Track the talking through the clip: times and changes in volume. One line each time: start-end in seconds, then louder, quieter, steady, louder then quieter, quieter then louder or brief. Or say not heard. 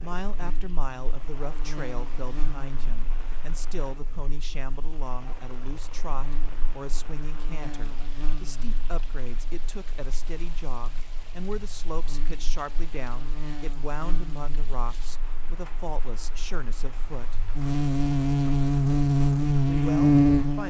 0.0-17.4 steady
19.6-20.6 brief.